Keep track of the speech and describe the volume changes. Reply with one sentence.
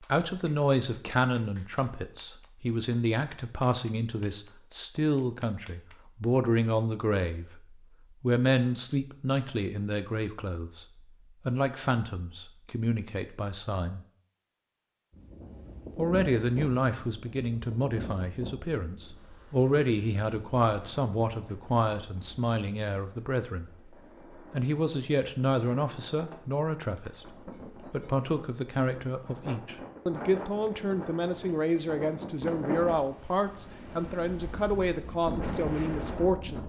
The volume of the speech stays about the same.